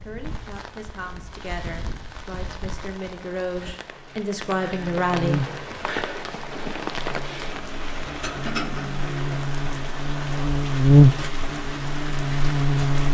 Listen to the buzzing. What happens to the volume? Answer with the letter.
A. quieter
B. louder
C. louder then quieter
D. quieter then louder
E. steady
D.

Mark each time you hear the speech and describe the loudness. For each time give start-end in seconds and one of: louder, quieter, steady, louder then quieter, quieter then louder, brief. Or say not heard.
0.0-5.4 louder.